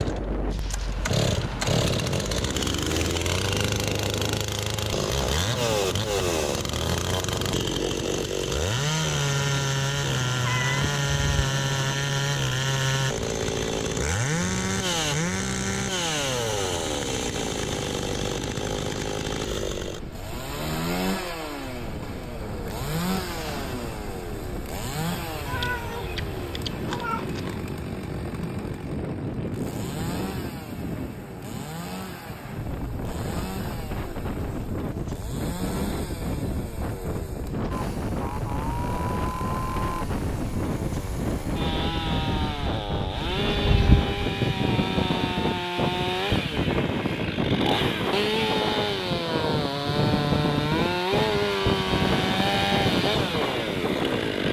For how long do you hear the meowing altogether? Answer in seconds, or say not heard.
5 s.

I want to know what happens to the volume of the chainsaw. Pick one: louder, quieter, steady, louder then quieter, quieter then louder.
quieter then louder.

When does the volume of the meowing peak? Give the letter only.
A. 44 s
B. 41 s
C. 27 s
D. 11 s
A.